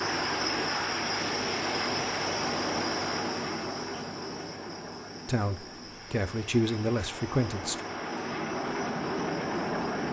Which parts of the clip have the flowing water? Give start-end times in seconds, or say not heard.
not heard.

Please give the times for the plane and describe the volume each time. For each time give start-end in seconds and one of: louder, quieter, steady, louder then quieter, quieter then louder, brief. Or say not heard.
0.0-10.0 quieter then louder.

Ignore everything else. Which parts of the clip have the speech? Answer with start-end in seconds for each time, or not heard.
5.2-7.8.